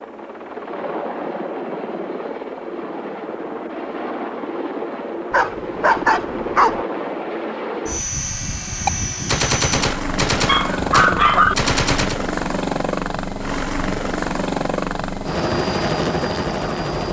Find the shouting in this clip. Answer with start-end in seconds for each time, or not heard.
not heard.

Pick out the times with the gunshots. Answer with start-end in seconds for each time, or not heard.
8.8-12.2.